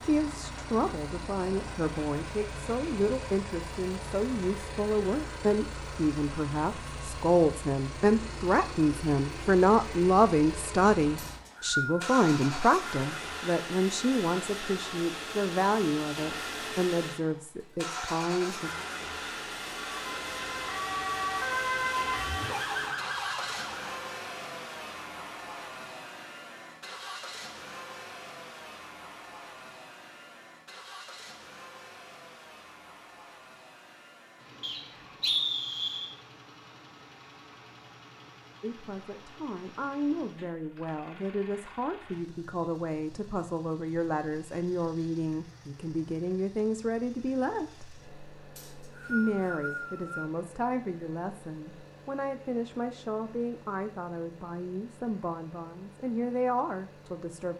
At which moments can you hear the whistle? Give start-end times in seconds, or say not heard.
11.2-12.2, 34.6-36.1, 48.5-50.3.